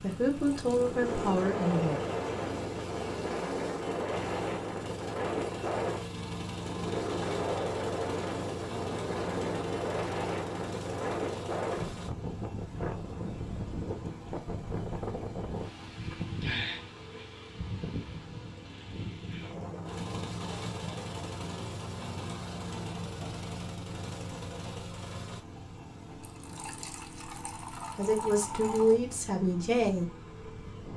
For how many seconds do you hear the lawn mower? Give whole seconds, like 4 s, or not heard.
31 s.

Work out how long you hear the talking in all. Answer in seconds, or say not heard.
4 s.